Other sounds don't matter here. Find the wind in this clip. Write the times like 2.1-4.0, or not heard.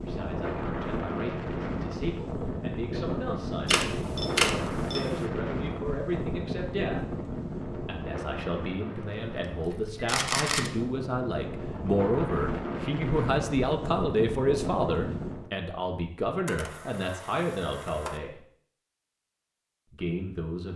0.0-15.5.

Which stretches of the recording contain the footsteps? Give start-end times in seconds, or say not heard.
not heard.